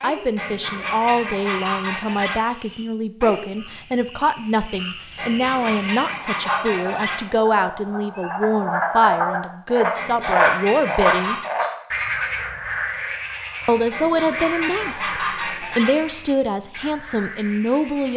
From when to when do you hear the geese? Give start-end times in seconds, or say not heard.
0.3-2.4, 5.2-7.2, 9.9-11.5, 13.9-15.9.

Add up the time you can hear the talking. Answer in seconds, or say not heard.
16 s.